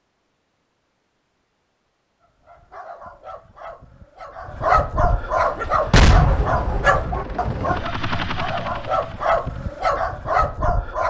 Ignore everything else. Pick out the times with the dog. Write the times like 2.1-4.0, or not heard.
2.2-11.0.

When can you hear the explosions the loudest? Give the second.
6 s.